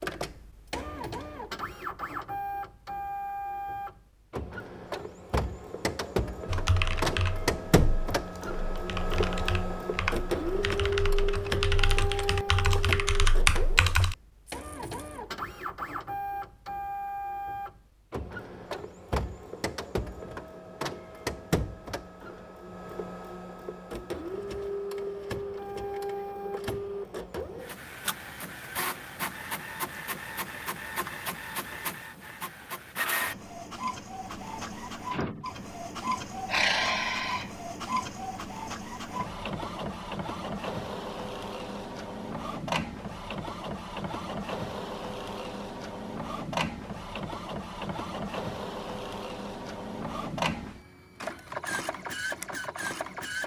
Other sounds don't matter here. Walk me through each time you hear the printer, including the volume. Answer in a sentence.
The printer can be heard from 0.0 to 53.4 s, at a steady volume.